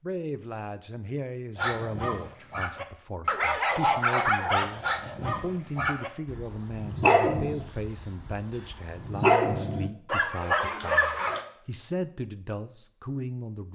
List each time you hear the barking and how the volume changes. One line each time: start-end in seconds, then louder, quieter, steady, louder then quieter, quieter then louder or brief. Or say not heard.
1.6-11.4 quieter then louder.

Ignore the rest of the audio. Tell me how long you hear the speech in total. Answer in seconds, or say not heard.
14 s.